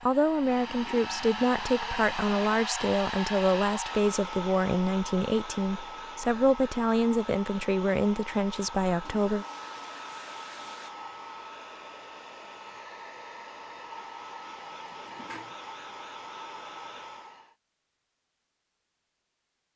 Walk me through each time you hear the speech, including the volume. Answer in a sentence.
You can hear the speech from 0.0 to 9.4 s, at a steady volume.